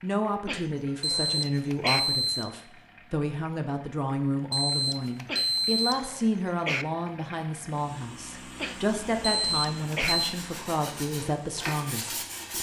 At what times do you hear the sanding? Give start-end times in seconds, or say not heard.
9.9-12.5.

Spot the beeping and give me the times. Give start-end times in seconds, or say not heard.
1.0-2.5, 4.5-6.0, 9.2-10.3.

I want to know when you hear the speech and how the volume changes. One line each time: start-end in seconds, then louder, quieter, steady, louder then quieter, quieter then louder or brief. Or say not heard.
0.0-12.5 steady.